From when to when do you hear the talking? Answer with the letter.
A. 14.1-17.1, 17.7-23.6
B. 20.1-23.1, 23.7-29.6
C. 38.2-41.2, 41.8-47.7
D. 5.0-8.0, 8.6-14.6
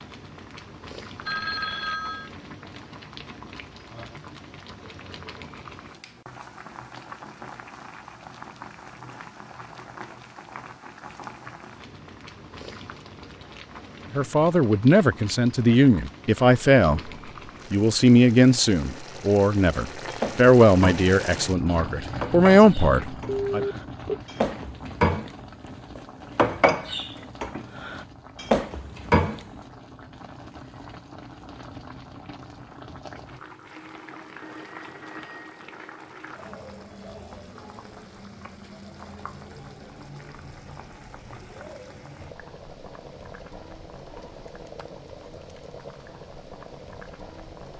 A.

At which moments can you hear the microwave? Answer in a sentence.
The microwave can't be heard in this clip.